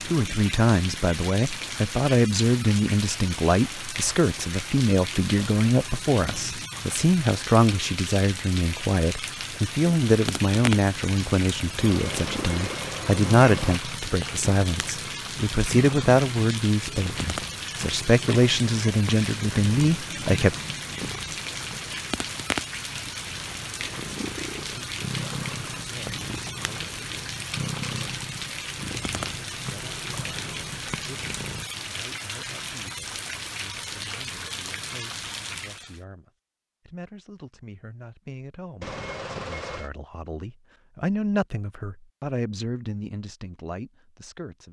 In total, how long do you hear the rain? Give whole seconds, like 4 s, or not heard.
36 s.